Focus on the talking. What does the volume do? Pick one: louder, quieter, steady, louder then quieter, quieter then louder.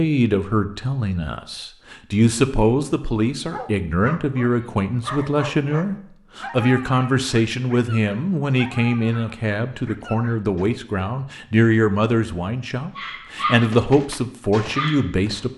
steady.